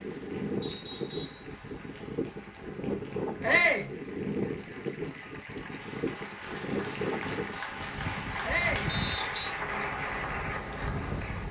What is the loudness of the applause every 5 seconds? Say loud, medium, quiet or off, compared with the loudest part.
quiet, loud, loud.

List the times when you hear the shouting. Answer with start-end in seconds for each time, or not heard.
3.4-3.9, 8.4-8.9.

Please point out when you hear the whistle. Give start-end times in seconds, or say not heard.
0.6-1.4, 8.8-9.5.